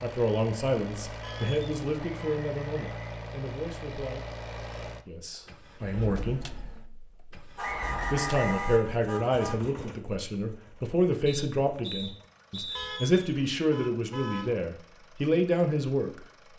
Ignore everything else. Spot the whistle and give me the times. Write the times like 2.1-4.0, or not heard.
1.9-3.0, 7.5-8.8, 11.2-13.0.